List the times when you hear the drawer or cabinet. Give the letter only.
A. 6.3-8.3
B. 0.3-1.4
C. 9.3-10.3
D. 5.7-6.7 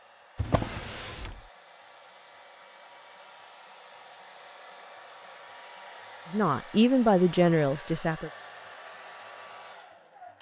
B.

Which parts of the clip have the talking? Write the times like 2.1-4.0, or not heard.
6.3-8.3.